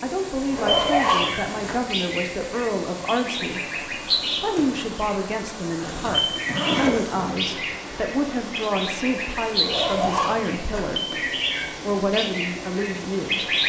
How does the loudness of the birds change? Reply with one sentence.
The volume of the birds stays about the same.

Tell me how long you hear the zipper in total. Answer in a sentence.
The zipper can be heard for 4 seconds in total.